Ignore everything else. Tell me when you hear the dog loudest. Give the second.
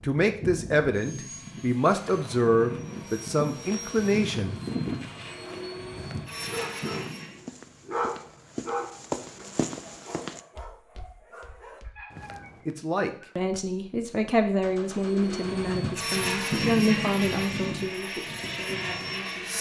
8 s.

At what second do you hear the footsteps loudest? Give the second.
9 s.